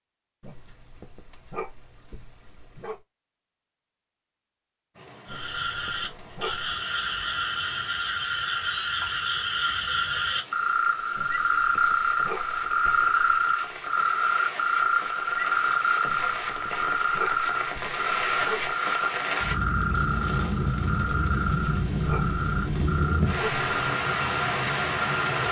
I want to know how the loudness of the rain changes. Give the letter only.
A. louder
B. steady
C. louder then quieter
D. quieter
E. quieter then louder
A.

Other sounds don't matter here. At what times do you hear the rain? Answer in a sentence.
You can hear the rain from 4.9 to 25.4 s.